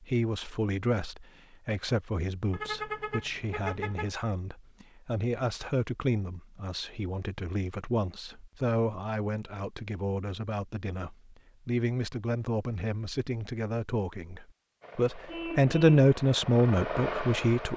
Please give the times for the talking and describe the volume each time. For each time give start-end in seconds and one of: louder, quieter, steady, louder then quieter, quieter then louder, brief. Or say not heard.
0.0-17.7 louder.